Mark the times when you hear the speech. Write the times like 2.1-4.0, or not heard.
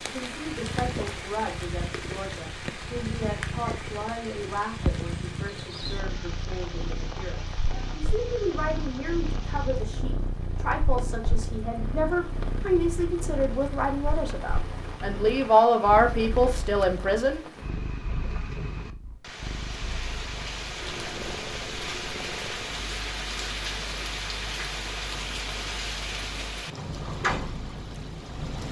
0.0-17.4.